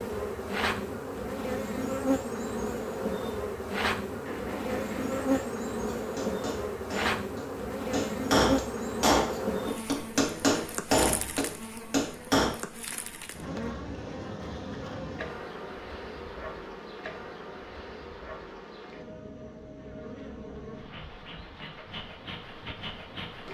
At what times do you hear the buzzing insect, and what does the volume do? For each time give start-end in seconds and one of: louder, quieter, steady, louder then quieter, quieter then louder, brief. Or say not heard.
0.0-23.4 quieter.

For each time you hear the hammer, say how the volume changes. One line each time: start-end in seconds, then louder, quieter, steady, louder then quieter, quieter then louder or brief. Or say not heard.
4.0-12.6 louder.